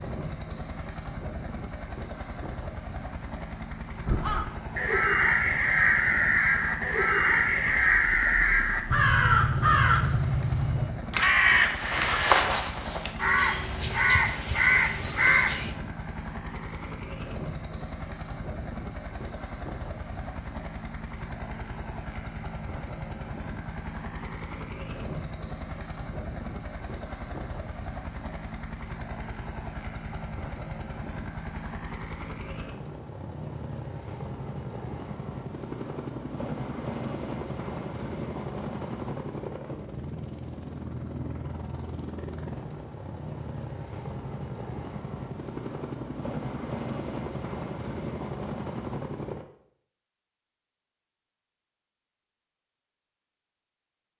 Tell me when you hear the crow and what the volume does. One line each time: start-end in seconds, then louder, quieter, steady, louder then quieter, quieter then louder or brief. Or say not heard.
4.0-15.8 steady.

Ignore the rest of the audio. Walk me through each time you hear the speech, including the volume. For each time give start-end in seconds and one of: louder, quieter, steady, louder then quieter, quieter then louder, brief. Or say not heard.
not heard.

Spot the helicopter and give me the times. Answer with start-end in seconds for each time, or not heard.
0.0-49.5.